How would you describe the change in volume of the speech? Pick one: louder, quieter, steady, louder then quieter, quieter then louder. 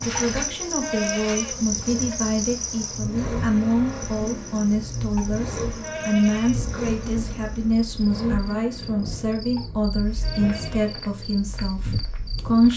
steady.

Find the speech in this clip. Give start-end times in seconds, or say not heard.
0.0-12.7.